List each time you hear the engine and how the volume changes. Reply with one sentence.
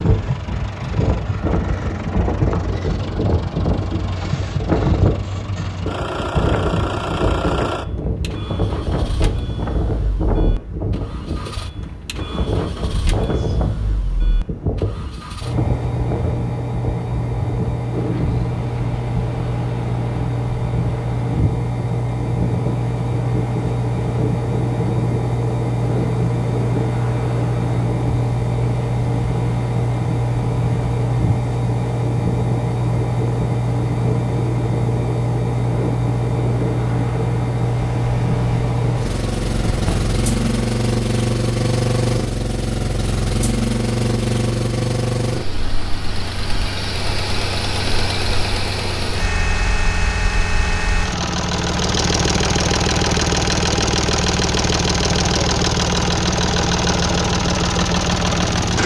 The engine can be heard from 0.0 to 58.8 s, getting louder.